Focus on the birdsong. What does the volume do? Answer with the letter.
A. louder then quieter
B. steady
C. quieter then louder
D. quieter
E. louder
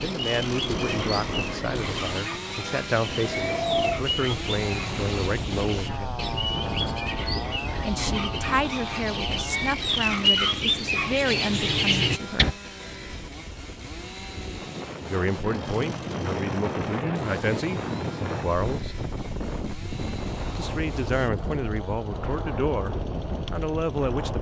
E.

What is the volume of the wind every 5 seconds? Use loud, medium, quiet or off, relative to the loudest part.
loud, loud, medium, loud, loud.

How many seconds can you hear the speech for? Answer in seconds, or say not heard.
19 s.